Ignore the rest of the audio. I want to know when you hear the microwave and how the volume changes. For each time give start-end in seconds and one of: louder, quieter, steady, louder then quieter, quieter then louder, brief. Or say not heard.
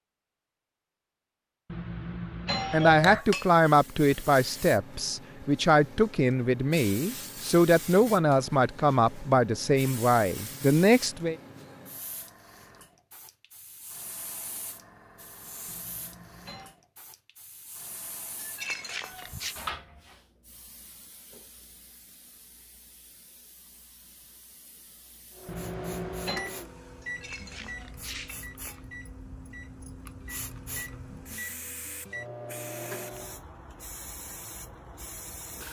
25.4-33.4 quieter then louder.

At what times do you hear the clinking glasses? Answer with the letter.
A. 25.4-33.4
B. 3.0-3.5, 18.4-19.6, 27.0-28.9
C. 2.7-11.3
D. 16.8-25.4
B.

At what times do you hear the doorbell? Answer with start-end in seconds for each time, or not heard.
1.7-3.2, 15.7-16.8, 25.4-26.5.